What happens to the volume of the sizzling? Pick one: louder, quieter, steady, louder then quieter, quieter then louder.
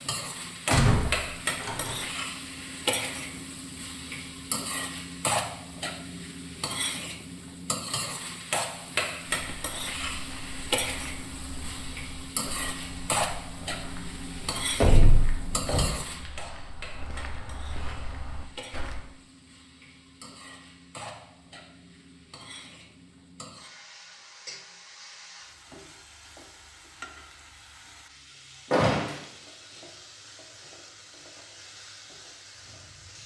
quieter.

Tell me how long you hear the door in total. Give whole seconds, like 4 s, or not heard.
3 s.